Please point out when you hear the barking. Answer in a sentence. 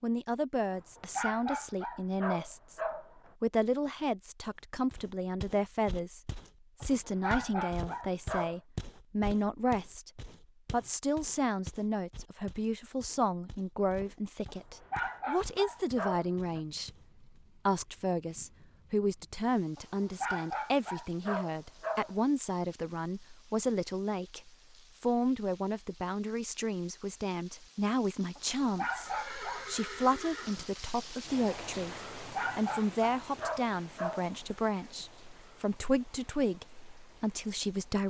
You can hear the barking from 0.7 to 3.3 s, from 6.8 to 8.6 s, from 14.4 to 16.6 s, from 19.8 to 22.1 s, from 28.4 to 29.7 s and from 32.1 to 34.4 s.